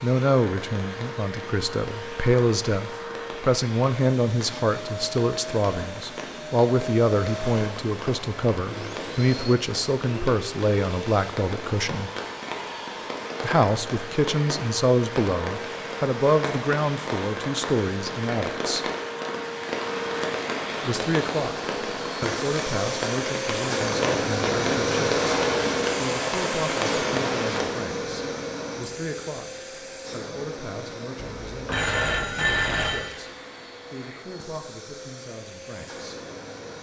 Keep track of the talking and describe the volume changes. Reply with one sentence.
The volume of the talking goes down.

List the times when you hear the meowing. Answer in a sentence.
The meowing can't be heard in this clip.